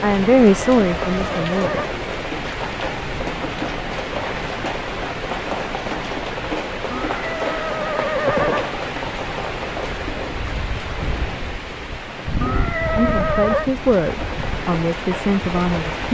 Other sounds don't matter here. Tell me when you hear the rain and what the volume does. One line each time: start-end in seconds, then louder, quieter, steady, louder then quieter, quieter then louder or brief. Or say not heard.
0.0-16.0 steady.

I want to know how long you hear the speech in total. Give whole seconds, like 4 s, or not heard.
5 s.